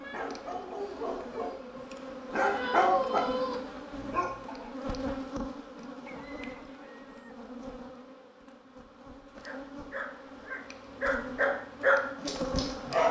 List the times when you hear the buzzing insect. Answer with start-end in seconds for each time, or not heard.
0.0-13.0.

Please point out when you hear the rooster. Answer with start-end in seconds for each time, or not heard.
6.0-7.3.